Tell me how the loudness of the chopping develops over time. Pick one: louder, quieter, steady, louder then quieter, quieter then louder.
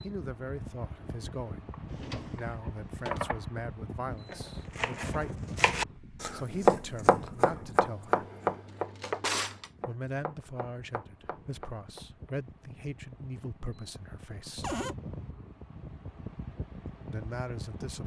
louder then quieter.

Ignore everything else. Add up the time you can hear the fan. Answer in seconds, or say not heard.
18 s.